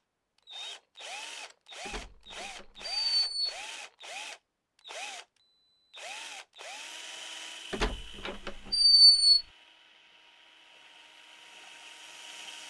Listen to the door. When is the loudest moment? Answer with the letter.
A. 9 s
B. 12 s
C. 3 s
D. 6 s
A.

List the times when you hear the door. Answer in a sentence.
You can hear the door from 1.9 to 3.5 s and from 7.7 to 9.4 s.